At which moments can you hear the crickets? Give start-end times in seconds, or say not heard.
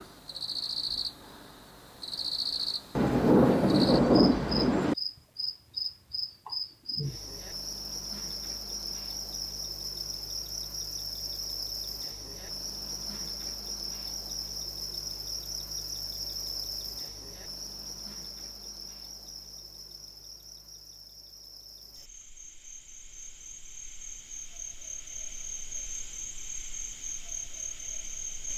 0.0-28.5.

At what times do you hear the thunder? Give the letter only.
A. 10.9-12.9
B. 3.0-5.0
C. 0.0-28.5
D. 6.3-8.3
B.